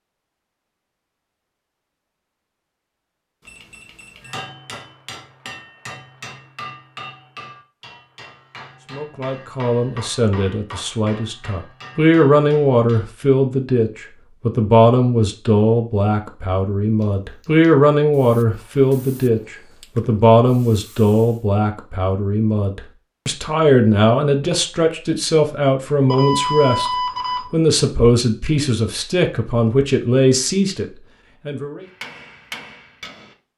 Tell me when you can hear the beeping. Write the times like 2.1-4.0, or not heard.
3.4-4.4, 17.0-17.6, 26.1-27.4.